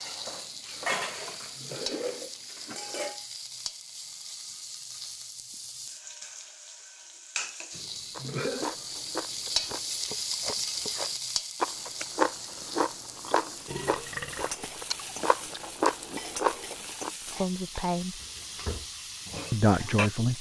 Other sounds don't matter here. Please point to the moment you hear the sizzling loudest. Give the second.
10 s.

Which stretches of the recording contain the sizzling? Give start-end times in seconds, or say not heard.
0.0-20.3.